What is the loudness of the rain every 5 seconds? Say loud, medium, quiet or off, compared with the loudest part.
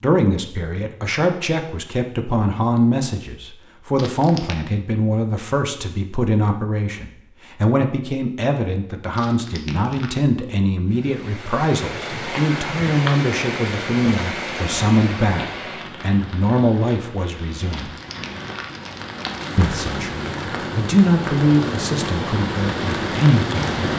off, off, loud, medium, loud.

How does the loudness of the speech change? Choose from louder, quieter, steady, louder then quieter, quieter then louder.
steady.